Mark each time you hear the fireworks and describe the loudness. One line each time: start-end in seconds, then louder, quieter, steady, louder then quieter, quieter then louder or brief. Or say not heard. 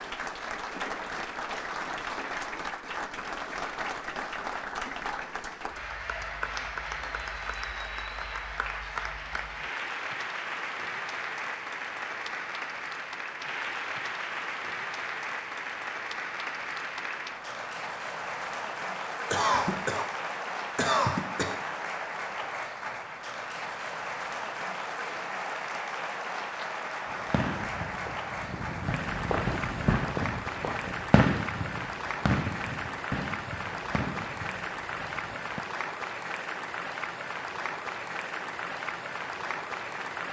27.1-35.6 louder then quieter.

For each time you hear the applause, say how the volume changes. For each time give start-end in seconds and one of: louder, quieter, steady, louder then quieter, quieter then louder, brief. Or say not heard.
0.0-40.2 steady.